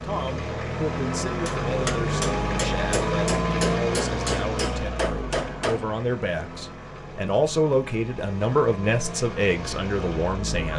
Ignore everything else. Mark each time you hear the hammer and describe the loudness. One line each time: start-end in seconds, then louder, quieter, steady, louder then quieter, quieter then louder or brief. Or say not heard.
1.4-5.9 steady.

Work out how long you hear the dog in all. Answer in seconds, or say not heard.
not heard.